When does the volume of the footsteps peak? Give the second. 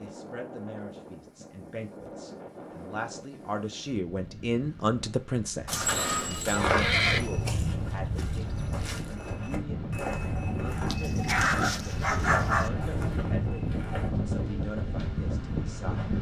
7 s.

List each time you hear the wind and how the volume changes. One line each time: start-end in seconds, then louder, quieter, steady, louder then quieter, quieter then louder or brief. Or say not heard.
0.0-16.1 louder.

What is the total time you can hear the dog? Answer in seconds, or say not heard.
2 s.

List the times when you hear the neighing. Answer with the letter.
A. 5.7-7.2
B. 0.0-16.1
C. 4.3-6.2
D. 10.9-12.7
A.